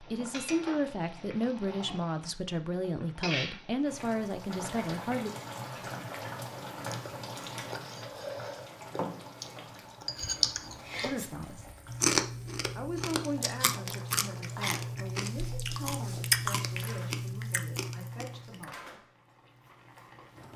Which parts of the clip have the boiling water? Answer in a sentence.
You can hear the boiling water from 0.0 to 20.5 s.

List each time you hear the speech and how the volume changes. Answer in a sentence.
You can hear the speech from 0.0 to 5.3 s, at a steady volume; briefly from 11.0 to 11.7 s; and from 12.8 to 19.1 s, getting quieter.